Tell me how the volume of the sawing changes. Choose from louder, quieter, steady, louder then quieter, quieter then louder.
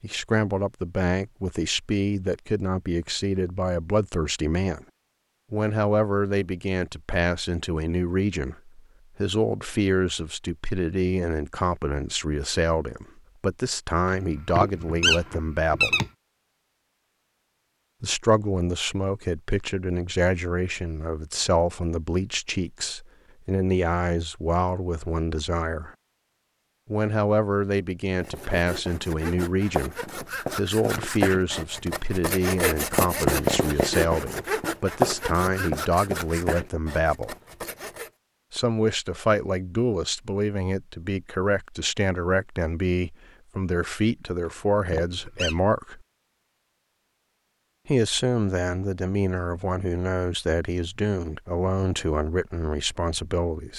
louder then quieter.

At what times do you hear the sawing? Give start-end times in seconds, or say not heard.
28.2-38.1.